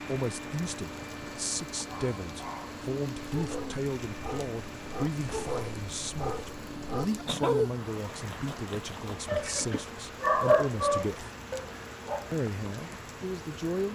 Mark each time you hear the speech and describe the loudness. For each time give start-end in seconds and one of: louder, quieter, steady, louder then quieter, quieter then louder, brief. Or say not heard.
0.1-11.3 steady
12.3-13.9 brief.